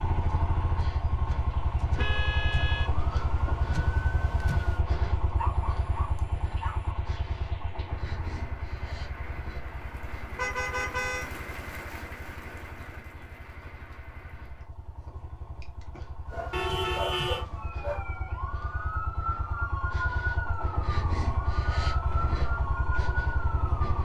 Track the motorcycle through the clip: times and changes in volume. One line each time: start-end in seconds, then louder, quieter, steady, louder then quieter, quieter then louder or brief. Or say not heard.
0.0-23.9 quieter then louder.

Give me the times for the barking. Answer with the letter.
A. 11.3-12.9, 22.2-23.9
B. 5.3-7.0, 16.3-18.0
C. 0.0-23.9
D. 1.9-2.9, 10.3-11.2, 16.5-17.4
B.